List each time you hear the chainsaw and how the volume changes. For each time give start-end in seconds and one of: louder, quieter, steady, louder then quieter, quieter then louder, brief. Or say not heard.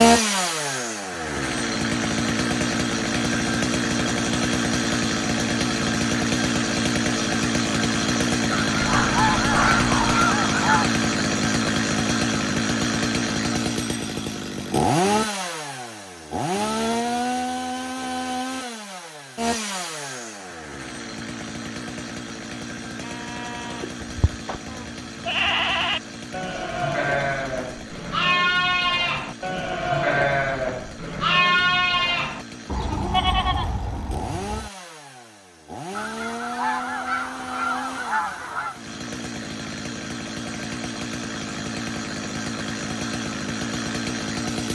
0.0-44.7 quieter then louder.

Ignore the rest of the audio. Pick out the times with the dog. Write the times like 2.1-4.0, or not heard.
8.8-10.2.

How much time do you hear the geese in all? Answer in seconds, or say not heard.
5 s.